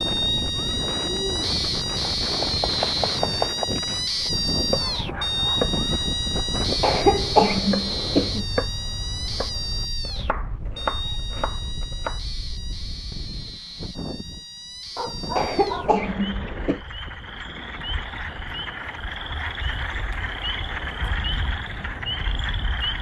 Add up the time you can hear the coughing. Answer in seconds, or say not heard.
3 s.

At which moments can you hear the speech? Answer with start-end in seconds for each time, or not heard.
not heard.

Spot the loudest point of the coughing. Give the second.
7 s.